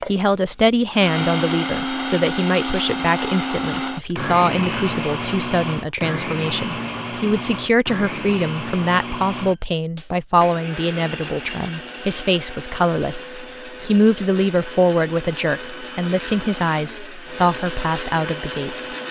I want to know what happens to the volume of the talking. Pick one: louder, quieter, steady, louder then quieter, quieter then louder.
steady.